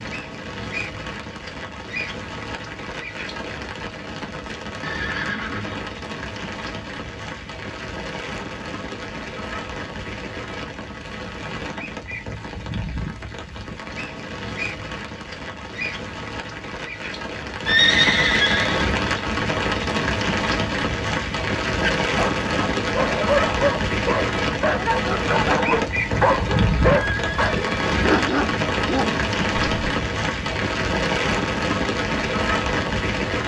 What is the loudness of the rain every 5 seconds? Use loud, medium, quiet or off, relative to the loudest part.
medium, medium, medium, loud, loud, loud, loud.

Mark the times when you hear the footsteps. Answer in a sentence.
The footsteps can't be heard in this clip.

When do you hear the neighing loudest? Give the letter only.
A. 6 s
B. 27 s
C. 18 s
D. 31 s
C.